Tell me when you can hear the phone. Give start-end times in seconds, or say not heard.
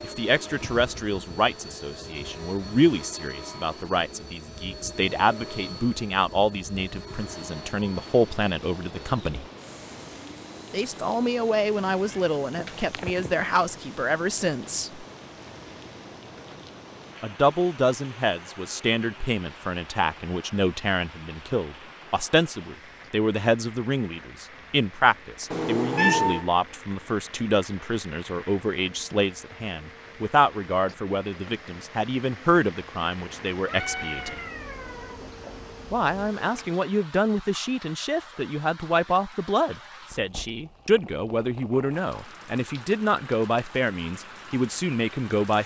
not heard.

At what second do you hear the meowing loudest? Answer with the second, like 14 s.
26 s.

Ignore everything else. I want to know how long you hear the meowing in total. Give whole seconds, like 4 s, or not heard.
5 s.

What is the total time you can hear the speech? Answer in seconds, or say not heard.
41 s.